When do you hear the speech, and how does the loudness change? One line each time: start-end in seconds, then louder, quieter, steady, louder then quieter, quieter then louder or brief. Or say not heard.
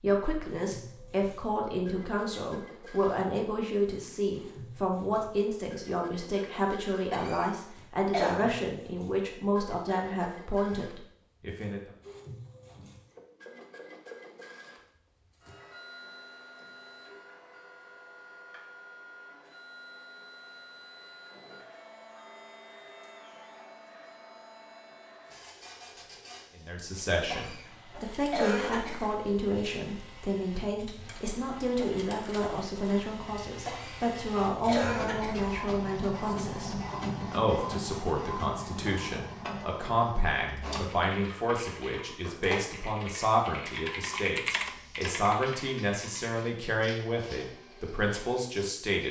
0.0-11.9 steady
26.6-49.0 steady.